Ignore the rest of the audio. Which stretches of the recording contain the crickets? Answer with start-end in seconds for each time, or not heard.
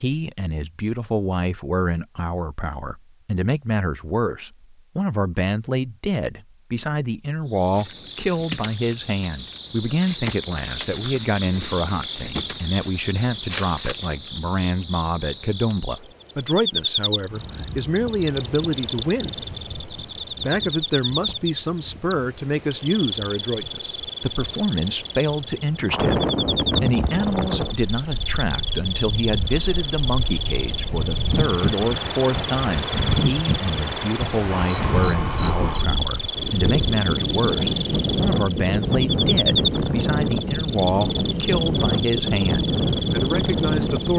7.5-44.1.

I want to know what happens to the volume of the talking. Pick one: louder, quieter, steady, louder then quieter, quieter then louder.
steady.